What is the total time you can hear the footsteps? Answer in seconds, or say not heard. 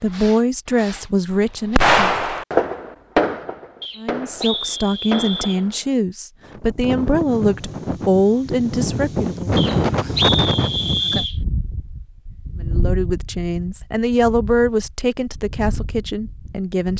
not heard.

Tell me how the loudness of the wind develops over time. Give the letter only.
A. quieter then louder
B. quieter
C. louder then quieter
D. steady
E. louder
C.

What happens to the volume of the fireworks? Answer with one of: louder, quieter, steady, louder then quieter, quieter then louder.
louder then quieter.